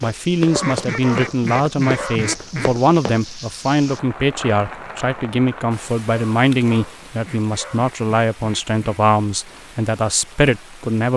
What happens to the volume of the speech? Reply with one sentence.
The volume of the speech stays about the same.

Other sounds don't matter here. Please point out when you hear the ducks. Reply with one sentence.
You can hear the ducks from 0.6 to 2.8 s and from 7.2 to 9.0 s.